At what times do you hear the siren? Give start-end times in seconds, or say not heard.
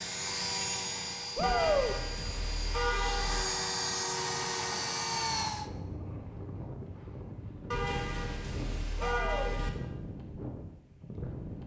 not heard.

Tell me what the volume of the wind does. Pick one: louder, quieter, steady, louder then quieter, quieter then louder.
steady.